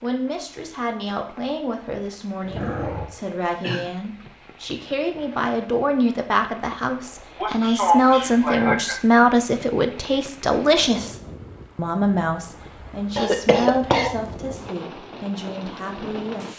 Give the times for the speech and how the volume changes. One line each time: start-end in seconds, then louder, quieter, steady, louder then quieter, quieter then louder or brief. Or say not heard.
0.0-16.5 louder then quieter.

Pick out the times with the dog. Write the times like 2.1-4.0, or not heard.
2.4-3.4.